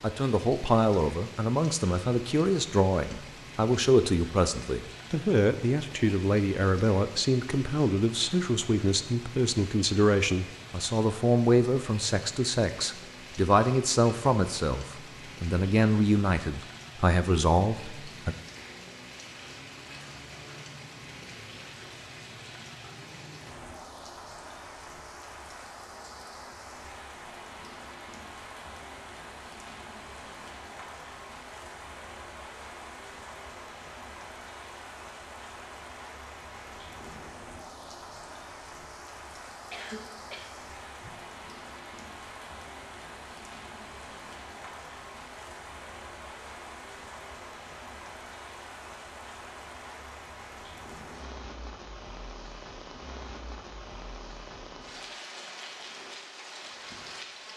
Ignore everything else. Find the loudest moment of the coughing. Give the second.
40 s.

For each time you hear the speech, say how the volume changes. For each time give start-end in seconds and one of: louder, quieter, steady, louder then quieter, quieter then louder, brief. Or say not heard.
0.0-18.4 steady.